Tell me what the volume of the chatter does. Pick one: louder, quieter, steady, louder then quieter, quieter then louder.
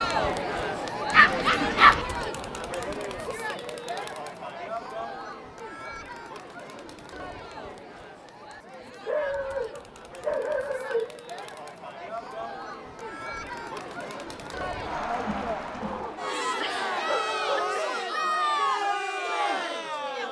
quieter then louder.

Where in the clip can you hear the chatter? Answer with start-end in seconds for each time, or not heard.
0.0-20.2.